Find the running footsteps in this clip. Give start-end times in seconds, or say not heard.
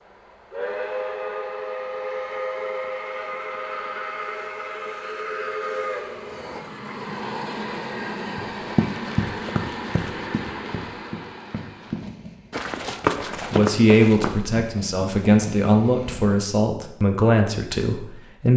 8.3-14.6.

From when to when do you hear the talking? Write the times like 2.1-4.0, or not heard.
13.5-18.5.